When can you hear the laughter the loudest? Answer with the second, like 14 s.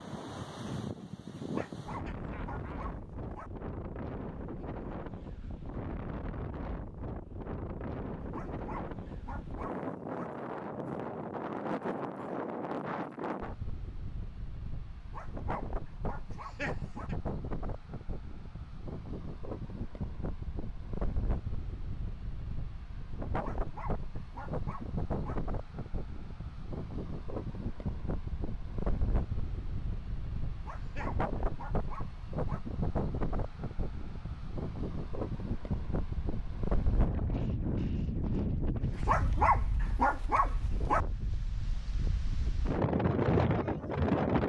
17 s.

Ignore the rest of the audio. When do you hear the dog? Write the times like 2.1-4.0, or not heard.
1.6-3.5, 8.2-10.3, 15.0-17.1, 23.3-25.4, 30.5-32.6, 38.9-41.0.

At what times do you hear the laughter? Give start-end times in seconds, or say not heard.
1.4-2.8, 16.2-17.1, 30.6-31.1.